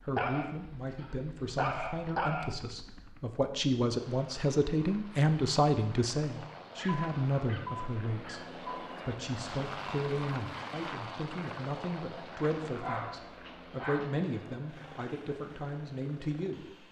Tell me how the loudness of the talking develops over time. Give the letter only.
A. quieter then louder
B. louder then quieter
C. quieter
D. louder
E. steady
B.